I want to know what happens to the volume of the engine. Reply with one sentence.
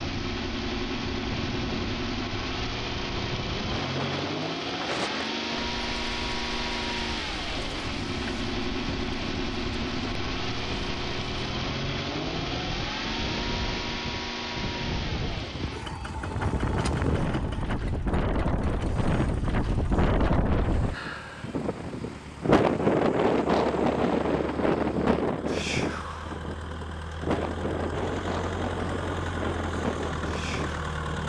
The volume of the engine goes down, then up.